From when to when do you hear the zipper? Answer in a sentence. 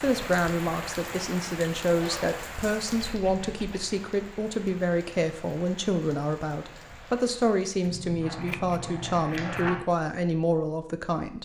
The zipper can be heard from 1.9 to 2.4 s and from 8.2 to 9.8 s.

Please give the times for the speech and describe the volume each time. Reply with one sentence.
You can hear the speech from 0.0 to 11.4 s, at a steady volume.